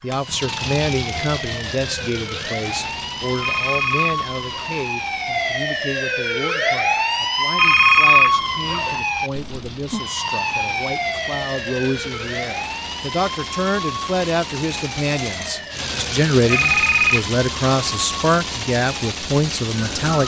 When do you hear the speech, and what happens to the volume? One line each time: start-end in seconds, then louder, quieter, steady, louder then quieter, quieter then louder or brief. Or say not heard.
0.0-20.2 quieter then louder.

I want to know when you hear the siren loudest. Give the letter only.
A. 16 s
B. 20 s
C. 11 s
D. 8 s
D.